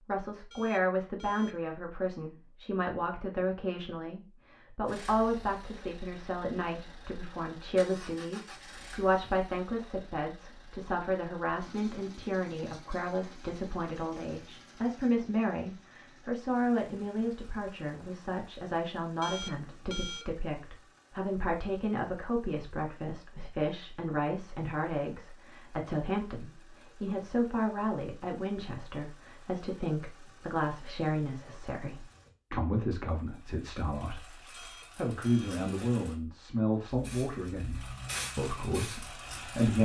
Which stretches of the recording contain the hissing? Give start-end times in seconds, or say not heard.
36.9-39.5.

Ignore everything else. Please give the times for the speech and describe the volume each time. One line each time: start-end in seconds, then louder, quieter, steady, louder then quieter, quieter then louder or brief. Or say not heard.
0.1-39.7 steady.